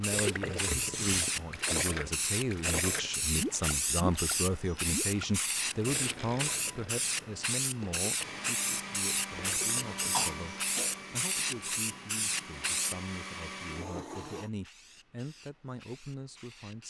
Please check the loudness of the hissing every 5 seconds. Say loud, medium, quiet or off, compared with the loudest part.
loud, loud, loud, quiet.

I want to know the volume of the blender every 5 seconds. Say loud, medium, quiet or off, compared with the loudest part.
off, loud, loud, off.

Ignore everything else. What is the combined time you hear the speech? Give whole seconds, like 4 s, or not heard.
17 s.